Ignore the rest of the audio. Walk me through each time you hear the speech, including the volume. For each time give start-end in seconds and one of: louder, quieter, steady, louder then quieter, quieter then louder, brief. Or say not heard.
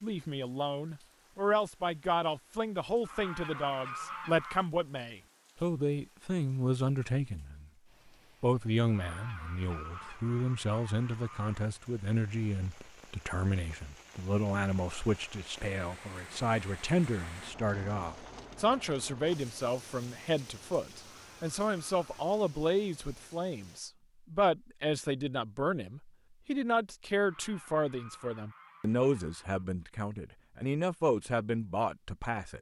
0.0-7.7 steady
8.4-32.5 steady.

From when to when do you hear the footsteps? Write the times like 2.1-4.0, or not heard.
not heard.